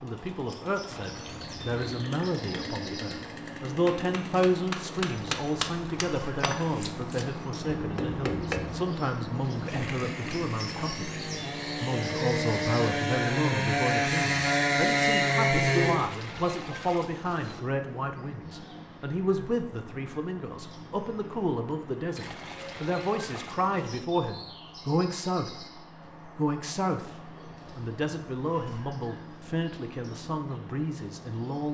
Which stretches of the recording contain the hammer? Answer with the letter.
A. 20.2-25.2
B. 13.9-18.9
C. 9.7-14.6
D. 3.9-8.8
D.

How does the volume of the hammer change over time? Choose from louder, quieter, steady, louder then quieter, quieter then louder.
quieter then louder.